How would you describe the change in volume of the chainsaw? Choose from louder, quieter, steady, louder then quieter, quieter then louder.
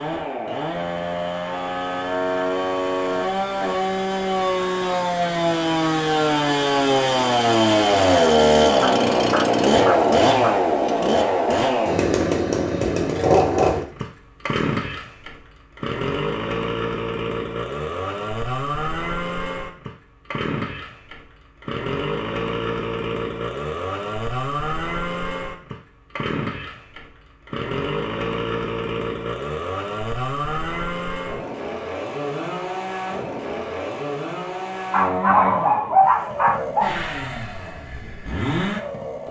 quieter.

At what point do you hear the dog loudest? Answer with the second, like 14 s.
36 s.